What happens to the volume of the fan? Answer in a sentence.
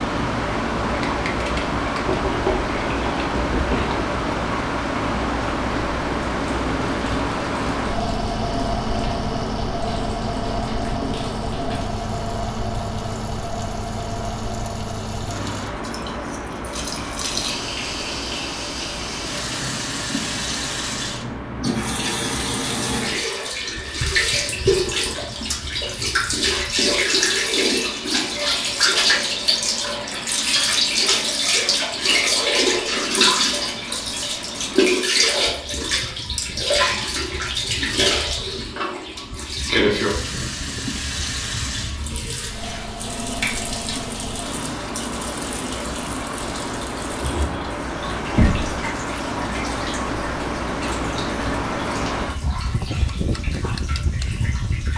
The loudness of the fan goes down, then up.